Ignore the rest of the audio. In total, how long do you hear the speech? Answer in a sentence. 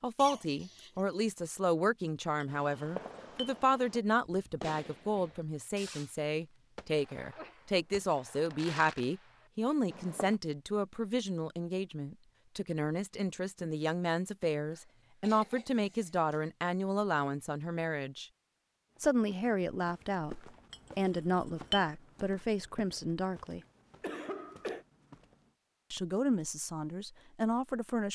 The speech can be heard for 25 seconds in total.